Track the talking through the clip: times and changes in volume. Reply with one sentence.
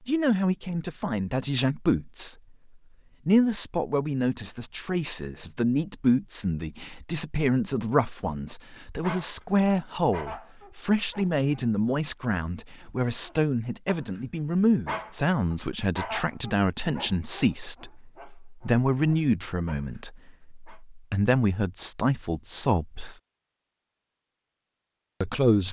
The talking can be heard briefly from 0.1 to 2.4 s; from 3.2 to 23.1 s, at a steady volume; and briefly from 25.2 to 25.6 s.